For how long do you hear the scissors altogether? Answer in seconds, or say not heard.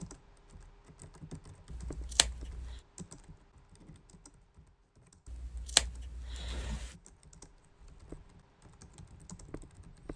3 s.